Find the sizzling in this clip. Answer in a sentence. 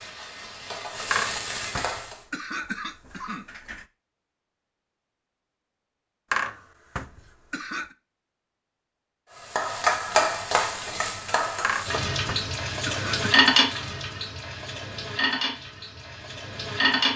You can hear the sizzling from 0.0 to 2.2 s and from 9.3 to 17.1 s.